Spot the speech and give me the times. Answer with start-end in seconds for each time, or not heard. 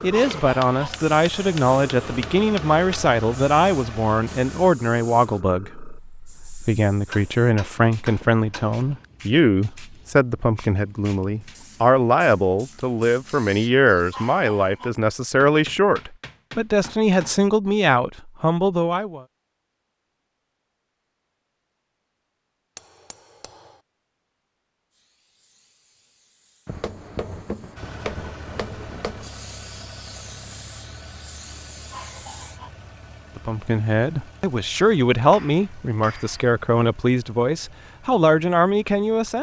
0.0-19.2, 33.4-39.3.